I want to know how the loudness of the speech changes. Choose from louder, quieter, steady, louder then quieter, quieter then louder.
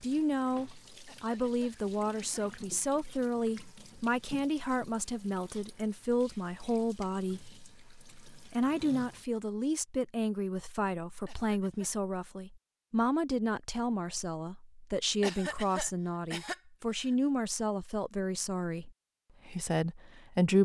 steady.